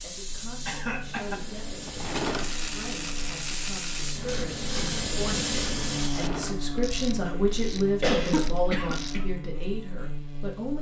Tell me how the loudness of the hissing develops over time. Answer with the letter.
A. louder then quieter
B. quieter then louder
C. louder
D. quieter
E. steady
C.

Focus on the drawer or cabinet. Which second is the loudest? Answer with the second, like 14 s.
2 s.